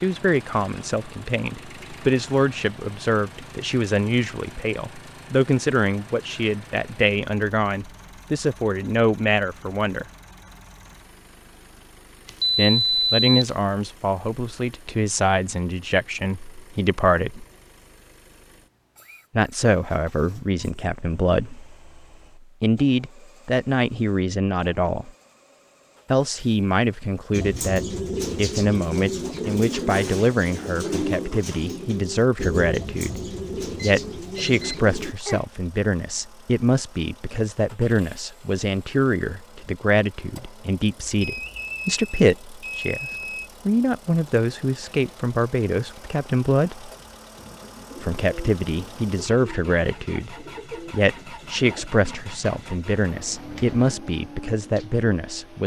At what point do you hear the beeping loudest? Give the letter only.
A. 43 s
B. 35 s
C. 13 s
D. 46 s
C.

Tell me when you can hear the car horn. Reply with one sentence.
The car horn can't be heard in this clip.